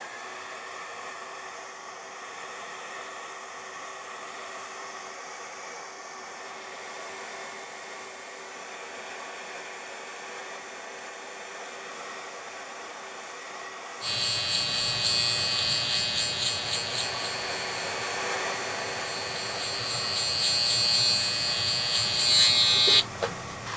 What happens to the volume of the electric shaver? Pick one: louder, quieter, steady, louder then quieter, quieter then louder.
quieter then louder.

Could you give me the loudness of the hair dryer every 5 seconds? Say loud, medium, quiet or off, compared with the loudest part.
medium, medium, medium, loud, medium.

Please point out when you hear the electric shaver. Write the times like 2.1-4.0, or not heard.
14.0-23.7.